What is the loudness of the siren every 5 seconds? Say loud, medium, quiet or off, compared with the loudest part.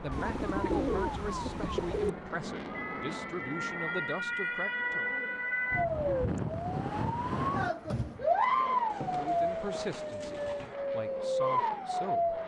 medium, loud, loud.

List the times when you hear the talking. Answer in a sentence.
The talking can be heard from 0.0 to 5.1 s and from 9.1 to 12.4 s.